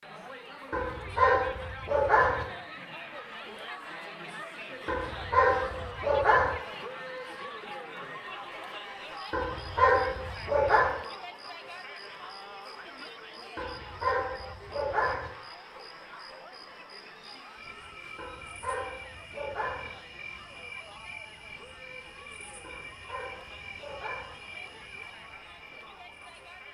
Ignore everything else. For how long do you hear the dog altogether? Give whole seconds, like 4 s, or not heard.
10 s.